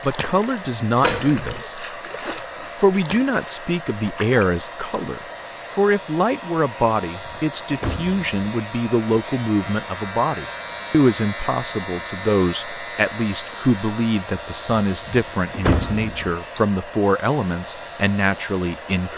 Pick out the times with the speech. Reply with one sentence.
You can hear the speech from 0.0 to 1.9 s and from 2.8 to 19.1 s.